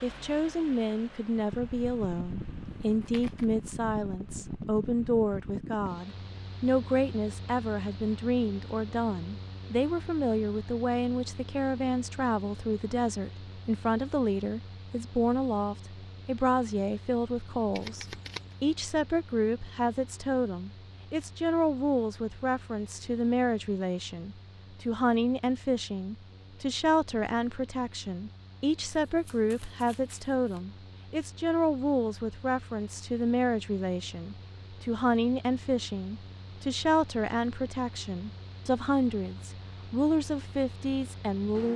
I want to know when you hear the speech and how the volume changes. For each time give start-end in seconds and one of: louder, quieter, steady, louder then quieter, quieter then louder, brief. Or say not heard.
0.0-41.7 steady.